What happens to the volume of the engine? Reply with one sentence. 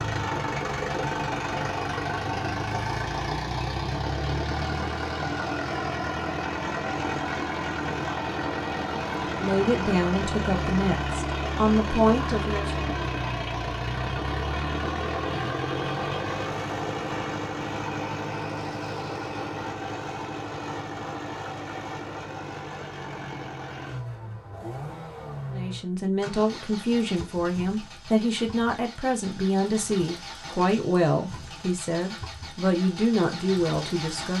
The loudness of the engine goes down.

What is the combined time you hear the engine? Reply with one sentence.
The engine can be heard for 34 seconds in total.